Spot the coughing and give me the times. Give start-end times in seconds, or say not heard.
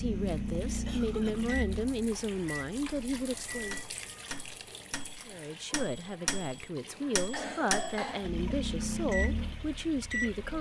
0.8-1.6, 6.8-8.3.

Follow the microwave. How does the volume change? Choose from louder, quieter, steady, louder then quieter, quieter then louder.
quieter then louder.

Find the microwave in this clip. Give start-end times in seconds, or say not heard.
0.0-10.5.